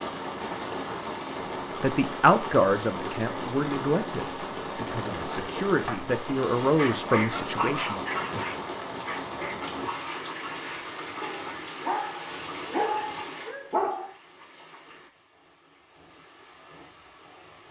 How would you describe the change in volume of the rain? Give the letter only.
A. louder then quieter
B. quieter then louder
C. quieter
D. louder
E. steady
C.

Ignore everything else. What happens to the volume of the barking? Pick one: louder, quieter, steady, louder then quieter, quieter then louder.
quieter then louder.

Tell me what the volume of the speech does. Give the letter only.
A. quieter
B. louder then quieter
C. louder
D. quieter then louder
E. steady
D.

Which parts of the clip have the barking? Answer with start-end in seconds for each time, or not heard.
6.8-14.1.